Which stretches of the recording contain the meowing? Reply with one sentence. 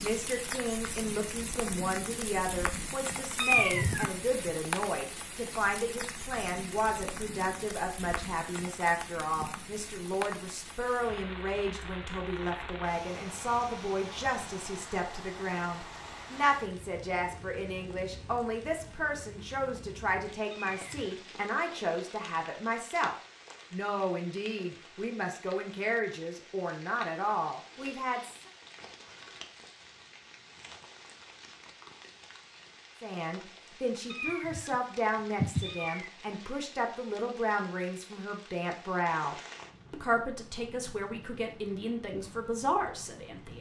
The meowing can be heard from 3.4 to 4.5 s, from 20.5 to 21.2 s, from 34.1 to 34.8 s and from 35.4 to 36.1 s.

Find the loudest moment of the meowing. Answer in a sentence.
The volume of the meowing peaks at 4 seconds.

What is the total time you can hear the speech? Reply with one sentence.
You can hear the speech for 39 seconds altogether.